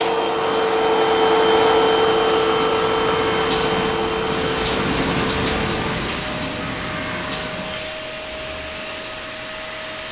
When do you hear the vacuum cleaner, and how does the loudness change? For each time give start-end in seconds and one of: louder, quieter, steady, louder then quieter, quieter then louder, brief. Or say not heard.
0.0-10.0 quieter.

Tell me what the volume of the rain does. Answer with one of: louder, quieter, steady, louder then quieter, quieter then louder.
louder then quieter.